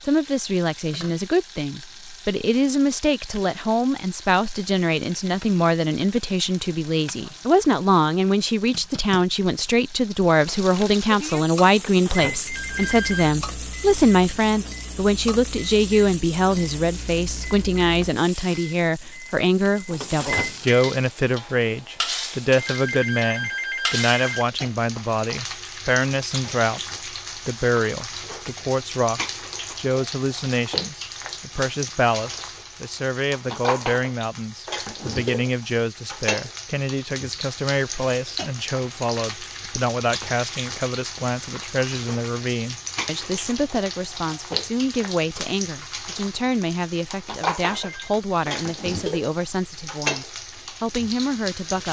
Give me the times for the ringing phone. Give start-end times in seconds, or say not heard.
12.4-13.3, 22.6-24.4, 47.8-48.2.